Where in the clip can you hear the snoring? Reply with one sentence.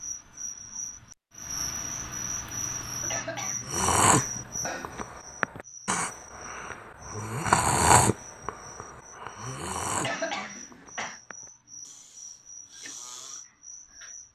The snoring can be heard from 3.6 to 13.4 s.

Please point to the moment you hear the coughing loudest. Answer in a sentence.
The loudest moment of the coughing is at 10 seconds.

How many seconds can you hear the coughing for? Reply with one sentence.
The coughing can be heard for 3 seconds in total.